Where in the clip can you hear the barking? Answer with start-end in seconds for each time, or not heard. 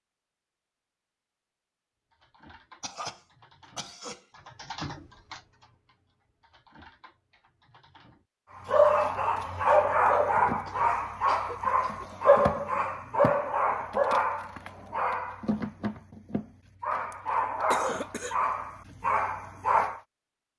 8.6-20.0.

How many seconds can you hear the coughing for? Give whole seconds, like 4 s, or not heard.
4 s.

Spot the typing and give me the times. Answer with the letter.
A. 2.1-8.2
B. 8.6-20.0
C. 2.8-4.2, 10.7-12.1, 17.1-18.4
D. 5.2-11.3
A.